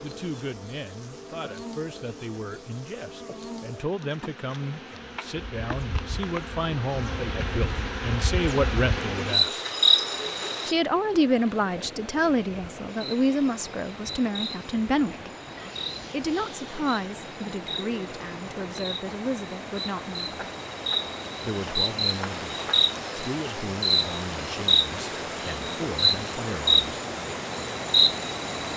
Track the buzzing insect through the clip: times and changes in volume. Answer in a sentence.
The buzzing insect can be heard from 0.0 to 10.8 s, getting louder; and from 12.9 to 28.7 s, getting louder.